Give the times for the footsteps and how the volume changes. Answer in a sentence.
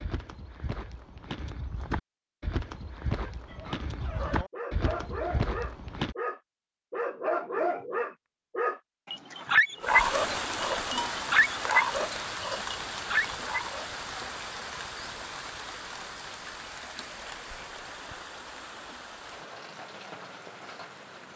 You can hear the footsteps from 0.0 to 6.2 s, getting louder.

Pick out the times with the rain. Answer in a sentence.
The rain can be heard from 9.8 to 21.3 s.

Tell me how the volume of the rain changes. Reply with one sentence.
The loudness of the rain goes down.